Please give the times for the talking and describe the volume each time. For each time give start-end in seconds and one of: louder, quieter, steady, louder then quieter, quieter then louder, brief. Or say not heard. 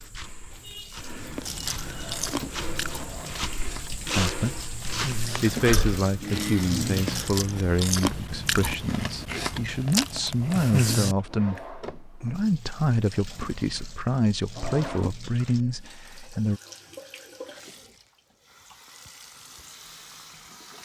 4.0-16.6 steady.